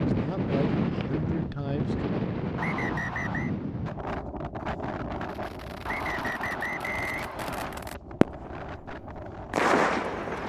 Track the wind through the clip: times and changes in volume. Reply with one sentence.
The wind can be heard from 0.0 to 10.4 s, getting quieter.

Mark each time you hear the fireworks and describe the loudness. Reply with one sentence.
You can hear the fireworks from 5.2 to 10.4 s, getting louder.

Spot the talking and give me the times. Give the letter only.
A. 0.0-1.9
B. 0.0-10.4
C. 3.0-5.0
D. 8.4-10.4
A.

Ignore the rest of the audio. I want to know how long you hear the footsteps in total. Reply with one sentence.
You can't hear the footsteps here.